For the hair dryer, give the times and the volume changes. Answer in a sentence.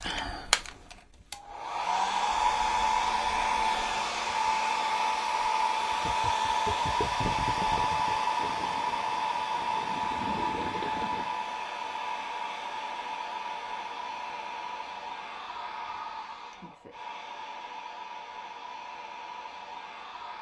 You can hear the hair dryer from 0.0 to 20.3 s, getting quieter.